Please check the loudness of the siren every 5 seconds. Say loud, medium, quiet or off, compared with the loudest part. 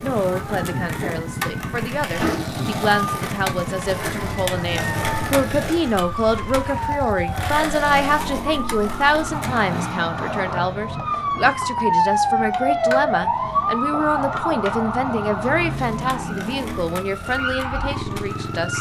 medium, medium, loud, medium.